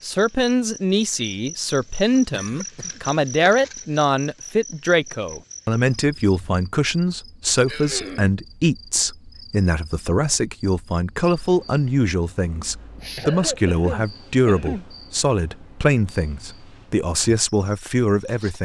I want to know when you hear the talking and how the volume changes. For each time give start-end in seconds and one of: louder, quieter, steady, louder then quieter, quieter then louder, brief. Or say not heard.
0.0-18.6 steady.